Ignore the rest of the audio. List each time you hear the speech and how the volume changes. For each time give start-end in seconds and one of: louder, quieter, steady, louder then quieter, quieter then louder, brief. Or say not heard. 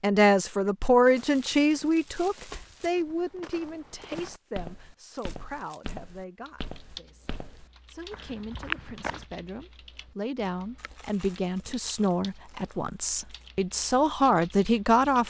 0.0-15.2 quieter then louder.